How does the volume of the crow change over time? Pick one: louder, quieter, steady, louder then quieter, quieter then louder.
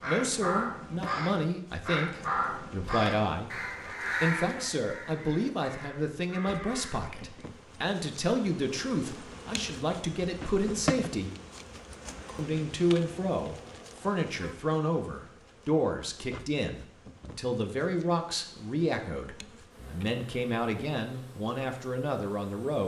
quieter.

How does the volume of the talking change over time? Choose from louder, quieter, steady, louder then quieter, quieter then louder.
steady.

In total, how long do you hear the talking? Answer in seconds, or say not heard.
21 s.